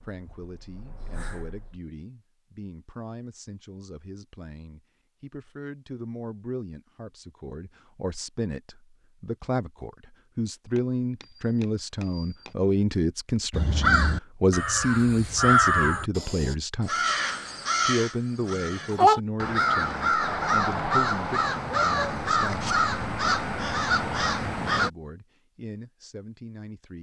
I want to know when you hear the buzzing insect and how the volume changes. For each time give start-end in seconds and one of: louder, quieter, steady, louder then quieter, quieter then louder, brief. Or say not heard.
not heard.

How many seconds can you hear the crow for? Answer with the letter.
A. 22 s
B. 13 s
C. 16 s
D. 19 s
B.